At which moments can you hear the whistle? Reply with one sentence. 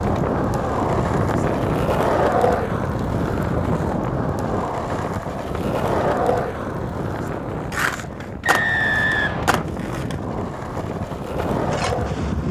The whistle can be heard from 8.4 to 9.6 s.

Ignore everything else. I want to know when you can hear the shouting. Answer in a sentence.
You can't hear the shouting here.